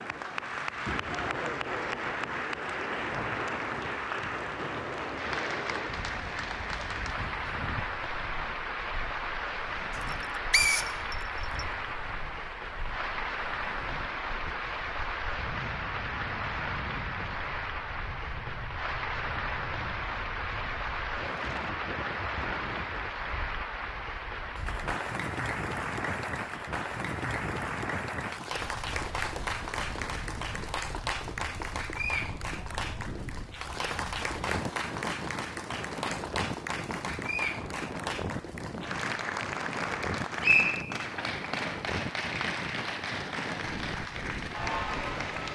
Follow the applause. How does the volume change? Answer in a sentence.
The volume of the applause stays about the same.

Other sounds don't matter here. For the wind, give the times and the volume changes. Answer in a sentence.
You can hear the wind from 0.0 to 45.5 s, getting quieter then louder.